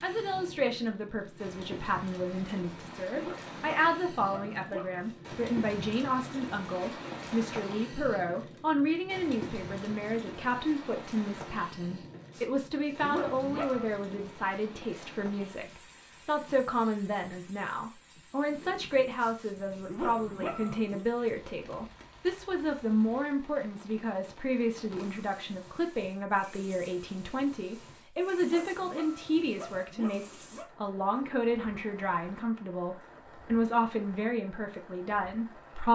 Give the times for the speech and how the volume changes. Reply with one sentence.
The speech can be heard from 0.0 to 35.9 s, at a steady volume.